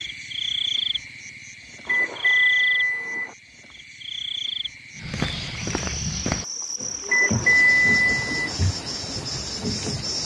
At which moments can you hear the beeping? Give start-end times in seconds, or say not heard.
1.9-3.3, 7.0-8.6.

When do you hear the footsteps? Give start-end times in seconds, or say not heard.
5.0-10.1.